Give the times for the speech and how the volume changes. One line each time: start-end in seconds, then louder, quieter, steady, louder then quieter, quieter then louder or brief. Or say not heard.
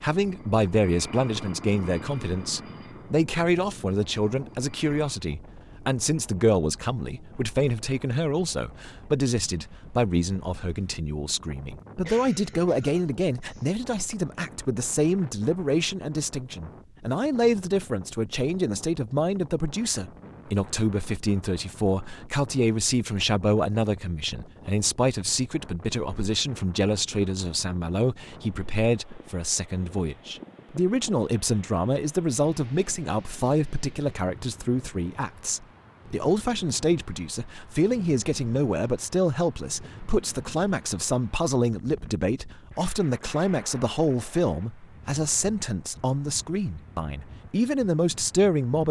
0.0-48.8 steady.